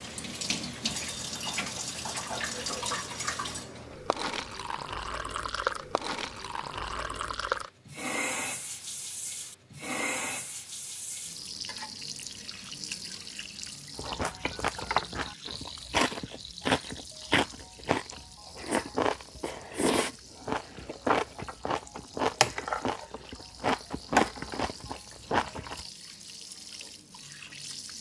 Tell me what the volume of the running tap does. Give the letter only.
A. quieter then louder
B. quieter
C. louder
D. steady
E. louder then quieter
B.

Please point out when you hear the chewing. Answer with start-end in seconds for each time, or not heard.
13.9-25.9.